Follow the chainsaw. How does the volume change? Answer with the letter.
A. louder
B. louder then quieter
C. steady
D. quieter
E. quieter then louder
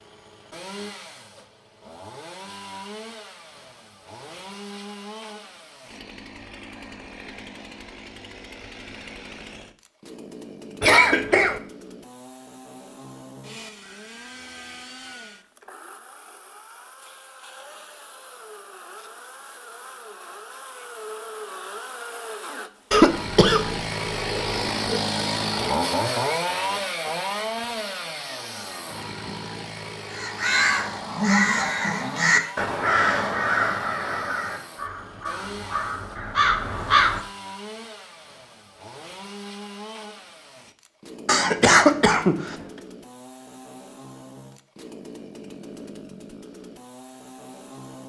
B.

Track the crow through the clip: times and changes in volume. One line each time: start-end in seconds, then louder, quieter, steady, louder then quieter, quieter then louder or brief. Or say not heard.
30.1-37.2 quieter then louder.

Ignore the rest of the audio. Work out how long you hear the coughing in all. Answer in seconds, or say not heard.
4 s.